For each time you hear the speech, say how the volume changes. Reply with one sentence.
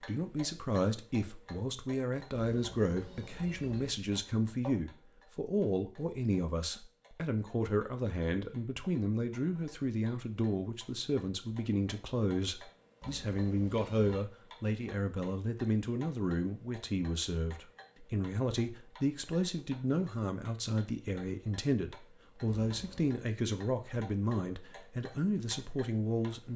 The speech can be heard from 0.1 to 26.5 s, at a steady volume.